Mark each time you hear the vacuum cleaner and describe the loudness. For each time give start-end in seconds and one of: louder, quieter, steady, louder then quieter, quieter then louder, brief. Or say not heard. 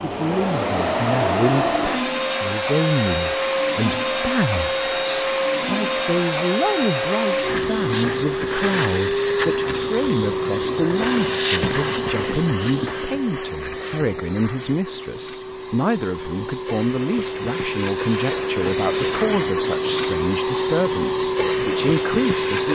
0.0-22.7 quieter then louder.